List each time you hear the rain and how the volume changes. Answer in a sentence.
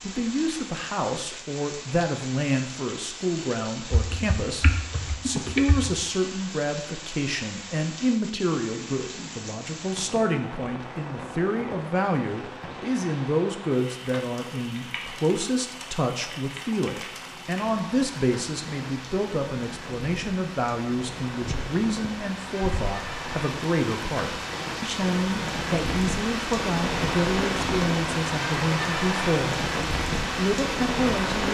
You can hear the rain from 0.0 to 31.4 s, getting louder.